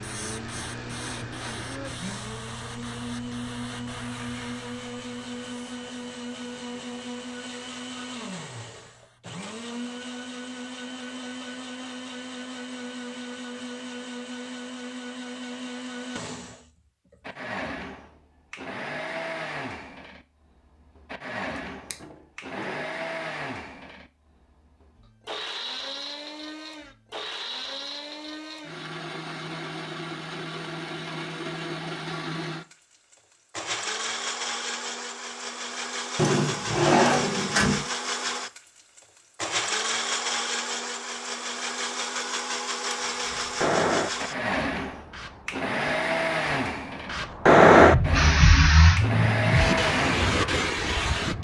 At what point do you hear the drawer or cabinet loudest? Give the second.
37 s.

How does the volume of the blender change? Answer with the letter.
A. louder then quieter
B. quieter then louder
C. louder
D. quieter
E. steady
C.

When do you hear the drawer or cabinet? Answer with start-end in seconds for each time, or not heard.
21.9-22.9, 36.1-37.9.